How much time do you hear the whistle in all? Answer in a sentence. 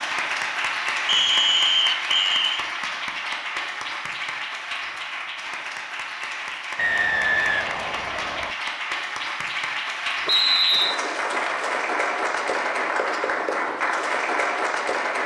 The whistle can be heard for 4 seconds in total.